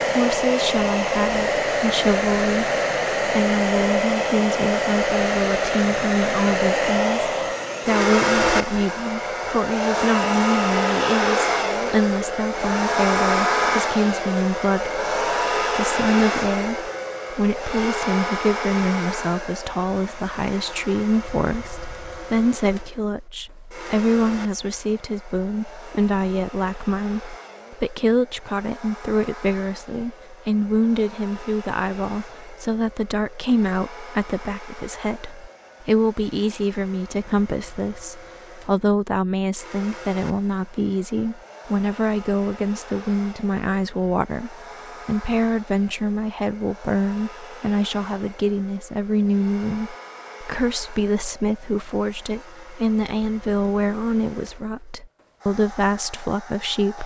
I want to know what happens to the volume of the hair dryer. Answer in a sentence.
The loudness of the hair dryer goes down.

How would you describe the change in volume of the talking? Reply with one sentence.
The volume of the talking stays about the same.